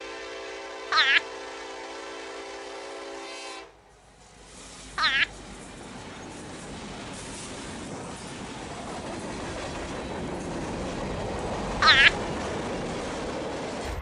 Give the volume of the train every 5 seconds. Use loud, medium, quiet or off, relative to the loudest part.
medium, medium, loud.